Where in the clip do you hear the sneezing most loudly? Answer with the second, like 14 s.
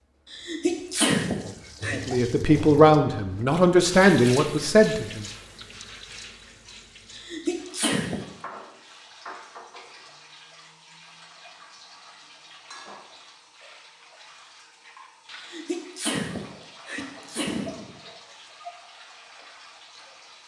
1 s.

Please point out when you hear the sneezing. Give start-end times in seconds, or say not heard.
0.3-2.0, 7.1-8.2, 15.3-17.9.